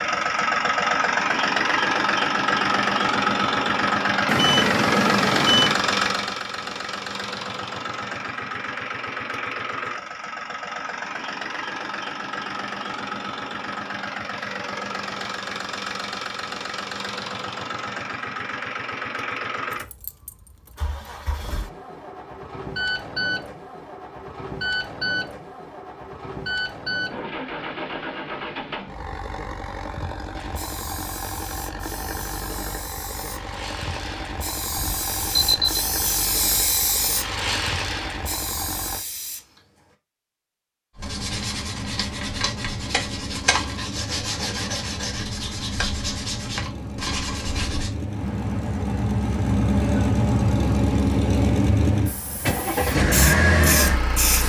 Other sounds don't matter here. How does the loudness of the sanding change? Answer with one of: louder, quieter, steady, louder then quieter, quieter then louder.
steady.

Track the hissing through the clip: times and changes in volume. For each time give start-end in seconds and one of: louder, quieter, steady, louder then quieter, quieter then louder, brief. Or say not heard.
30.4-40.0 louder then quieter
52.0-54.4 brief.